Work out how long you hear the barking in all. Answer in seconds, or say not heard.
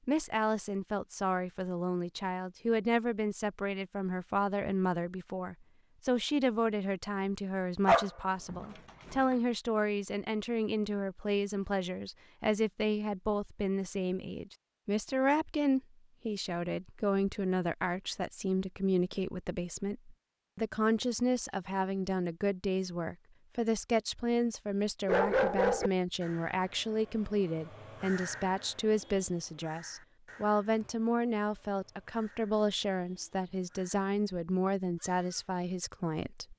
2 s.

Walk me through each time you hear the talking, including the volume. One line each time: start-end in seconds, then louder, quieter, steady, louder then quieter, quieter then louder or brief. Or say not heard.
0.1-36.5 steady.